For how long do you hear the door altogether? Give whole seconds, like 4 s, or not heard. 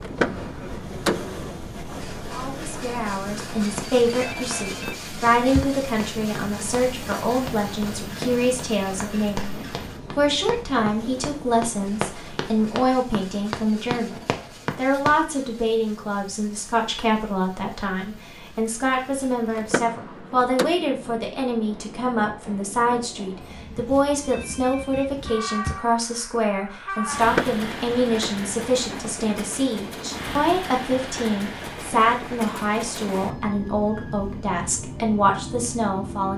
4 s.